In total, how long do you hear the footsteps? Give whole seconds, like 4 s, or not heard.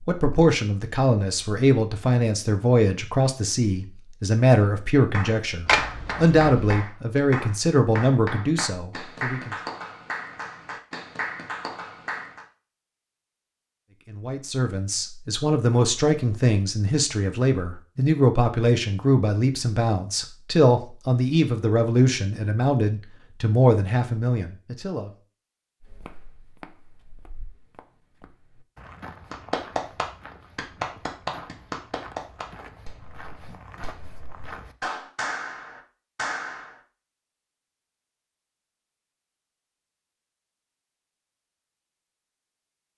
9 s.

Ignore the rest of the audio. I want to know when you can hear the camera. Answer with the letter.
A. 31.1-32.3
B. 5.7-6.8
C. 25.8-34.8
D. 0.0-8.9
B.